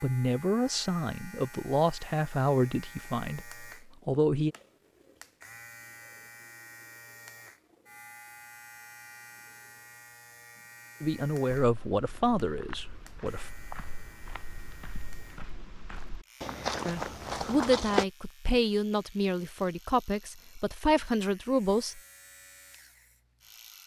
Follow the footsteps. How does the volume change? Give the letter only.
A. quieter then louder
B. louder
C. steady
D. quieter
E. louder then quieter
B.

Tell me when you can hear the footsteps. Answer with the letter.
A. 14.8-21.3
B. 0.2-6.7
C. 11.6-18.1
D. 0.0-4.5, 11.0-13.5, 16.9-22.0
C.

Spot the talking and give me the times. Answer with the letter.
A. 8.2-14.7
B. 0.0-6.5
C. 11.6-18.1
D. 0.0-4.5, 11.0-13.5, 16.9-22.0
D.